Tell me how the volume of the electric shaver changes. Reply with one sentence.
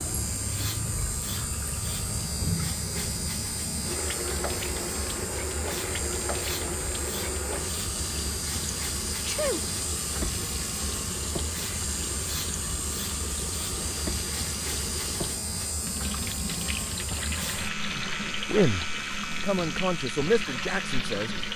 The volume of the electric shaver stays about the same.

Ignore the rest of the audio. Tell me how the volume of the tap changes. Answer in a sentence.
The volume of the tap stays about the same.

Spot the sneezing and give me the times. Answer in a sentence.
You can hear the sneezing from 9.2 to 9.7 s.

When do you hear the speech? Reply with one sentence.
The speech can be heard from 17.9 to 21.4 s.